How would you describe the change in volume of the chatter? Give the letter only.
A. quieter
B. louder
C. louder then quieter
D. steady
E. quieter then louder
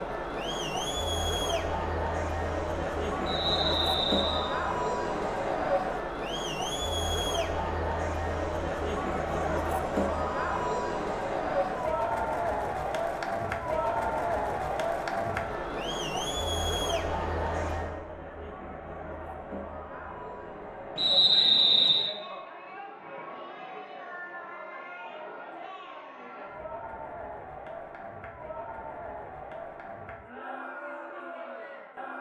A.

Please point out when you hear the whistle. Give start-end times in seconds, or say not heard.
3.2-4.5, 20.9-22.1.